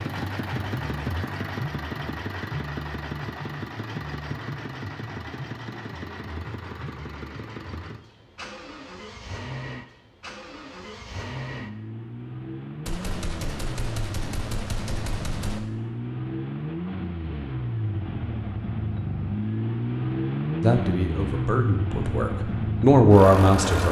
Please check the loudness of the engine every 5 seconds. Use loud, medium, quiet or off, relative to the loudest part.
medium, medium, medium, loud, loud.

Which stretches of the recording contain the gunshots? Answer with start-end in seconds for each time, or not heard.
12.8-15.6.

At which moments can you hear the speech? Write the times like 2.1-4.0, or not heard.
20.6-23.8.